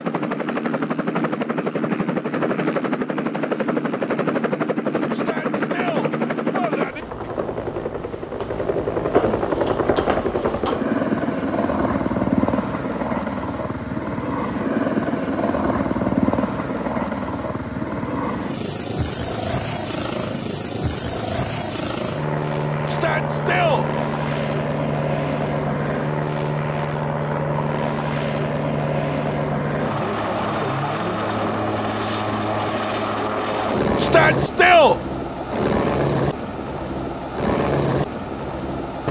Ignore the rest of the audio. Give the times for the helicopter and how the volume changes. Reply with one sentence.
The helicopter can be heard from 0.0 to 39.0 s, at a steady volume.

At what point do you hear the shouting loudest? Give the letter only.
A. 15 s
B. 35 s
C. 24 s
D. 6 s
B.